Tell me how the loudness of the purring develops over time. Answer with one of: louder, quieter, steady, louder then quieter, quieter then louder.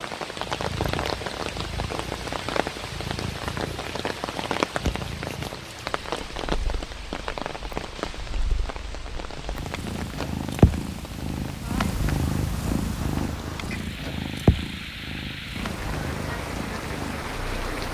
louder.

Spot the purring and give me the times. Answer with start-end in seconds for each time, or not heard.
0.3-17.8.